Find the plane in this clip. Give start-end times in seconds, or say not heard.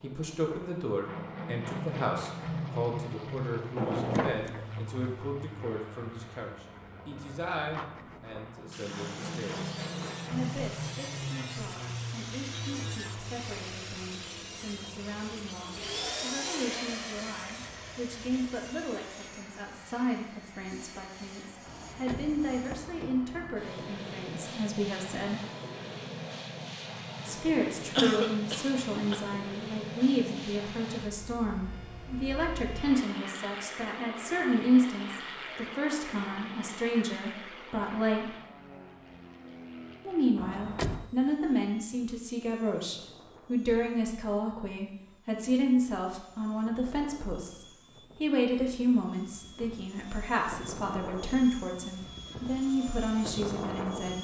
0.0-54.2.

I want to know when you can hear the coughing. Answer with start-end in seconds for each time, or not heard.
27.9-29.2.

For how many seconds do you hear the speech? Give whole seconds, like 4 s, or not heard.
50 s.